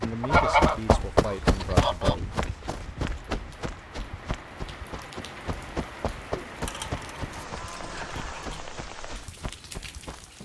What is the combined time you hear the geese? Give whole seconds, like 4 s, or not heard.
4 s.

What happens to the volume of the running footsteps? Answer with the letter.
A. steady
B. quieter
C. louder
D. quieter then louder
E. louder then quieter
B.